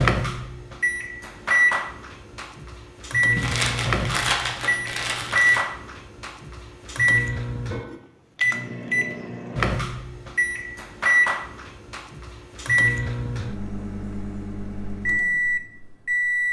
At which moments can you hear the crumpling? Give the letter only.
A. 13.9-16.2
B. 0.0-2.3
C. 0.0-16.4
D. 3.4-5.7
D.